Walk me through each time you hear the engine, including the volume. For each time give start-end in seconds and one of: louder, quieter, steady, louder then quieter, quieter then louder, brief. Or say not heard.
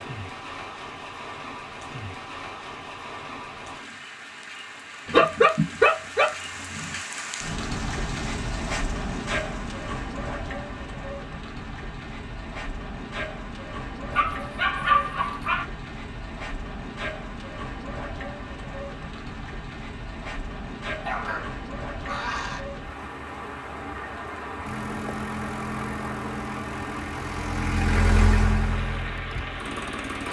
24.6-30.2 louder then quieter.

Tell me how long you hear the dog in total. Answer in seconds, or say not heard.
5 s.